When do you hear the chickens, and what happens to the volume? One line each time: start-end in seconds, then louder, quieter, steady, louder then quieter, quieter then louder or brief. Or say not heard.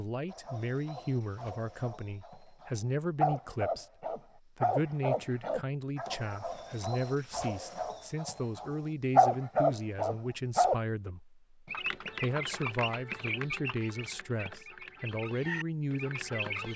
11.7-16.7 quieter then louder.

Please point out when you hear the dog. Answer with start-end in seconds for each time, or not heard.
0.3-10.8.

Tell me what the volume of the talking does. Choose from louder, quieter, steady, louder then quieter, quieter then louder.
steady.